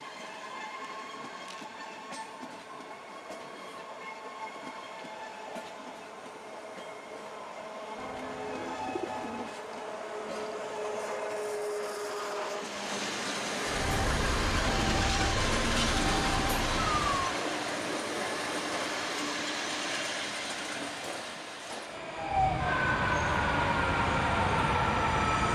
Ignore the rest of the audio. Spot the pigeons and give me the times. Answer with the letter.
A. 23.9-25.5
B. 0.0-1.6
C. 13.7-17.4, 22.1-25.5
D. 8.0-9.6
D.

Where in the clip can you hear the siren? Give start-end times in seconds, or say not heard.
13.7-17.4, 22.1-25.5.